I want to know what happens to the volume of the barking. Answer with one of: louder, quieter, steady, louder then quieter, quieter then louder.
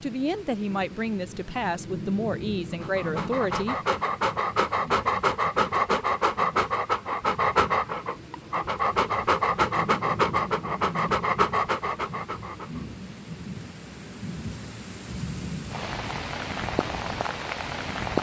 steady.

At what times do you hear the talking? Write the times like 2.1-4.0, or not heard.
0.0-3.8.